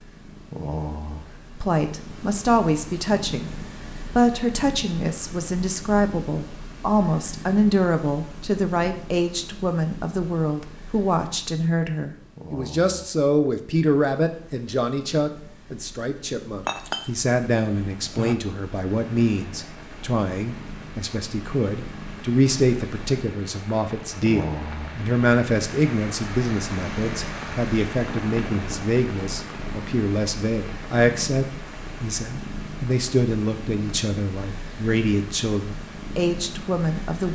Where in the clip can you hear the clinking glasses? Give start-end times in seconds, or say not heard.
16.6-18.4.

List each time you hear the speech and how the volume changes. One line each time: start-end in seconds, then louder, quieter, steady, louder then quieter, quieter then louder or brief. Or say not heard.
1.6-37.3 steady.